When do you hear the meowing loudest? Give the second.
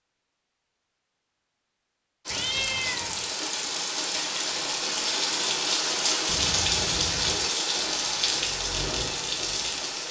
3 s.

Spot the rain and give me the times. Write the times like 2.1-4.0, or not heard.
2.2-10.0.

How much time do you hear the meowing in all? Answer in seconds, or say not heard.
2 s.